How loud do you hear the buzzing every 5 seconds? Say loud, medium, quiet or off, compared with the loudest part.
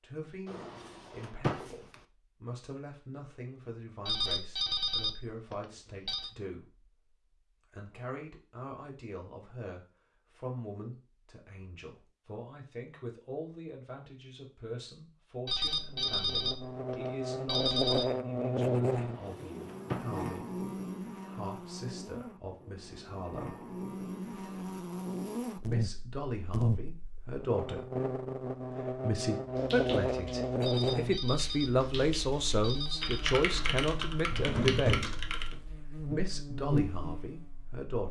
off, off, off, loud, medium, loud, loud, loud.